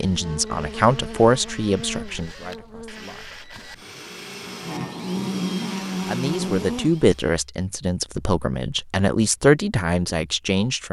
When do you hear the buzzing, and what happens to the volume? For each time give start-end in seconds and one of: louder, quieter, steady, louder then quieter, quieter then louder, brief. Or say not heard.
0.0-7.0 quieter then louder.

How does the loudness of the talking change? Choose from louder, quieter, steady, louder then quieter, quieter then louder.
quieter then louder.